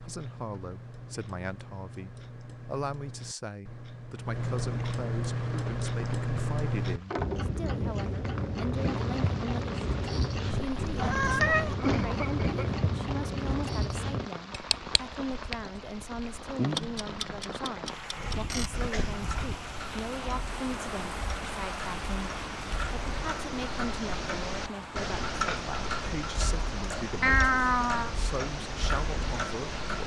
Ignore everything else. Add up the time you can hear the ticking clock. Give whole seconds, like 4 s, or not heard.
30 s.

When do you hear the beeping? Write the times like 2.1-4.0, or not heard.
not heard.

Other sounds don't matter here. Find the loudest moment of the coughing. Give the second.
12 s.